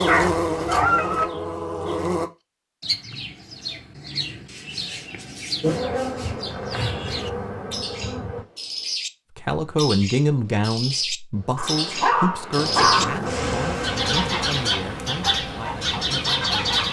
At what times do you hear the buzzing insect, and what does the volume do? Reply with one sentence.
The buzzing insect can be heard briefly from 0.0 to 2.3 s; briefly from 5.6 to 8.4 s; and from 12.6 to 16.8 s, getting quieter.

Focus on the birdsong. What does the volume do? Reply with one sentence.
The volume of the birdsong goes up.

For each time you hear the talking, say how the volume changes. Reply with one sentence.
The talking can be heard from 9.3 to 16.8 s, getting quieter.